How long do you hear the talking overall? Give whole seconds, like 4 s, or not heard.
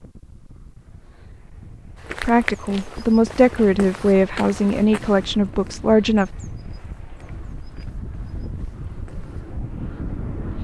4 s.